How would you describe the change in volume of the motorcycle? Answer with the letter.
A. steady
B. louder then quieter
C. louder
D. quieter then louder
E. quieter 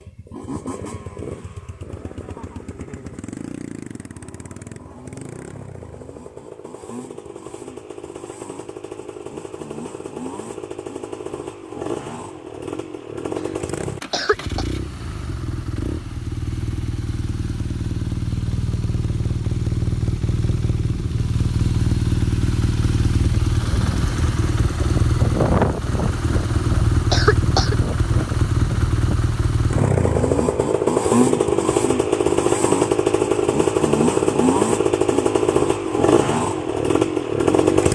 C.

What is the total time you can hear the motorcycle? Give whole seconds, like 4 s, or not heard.
38 s.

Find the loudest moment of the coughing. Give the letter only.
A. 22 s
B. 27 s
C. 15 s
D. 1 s
B.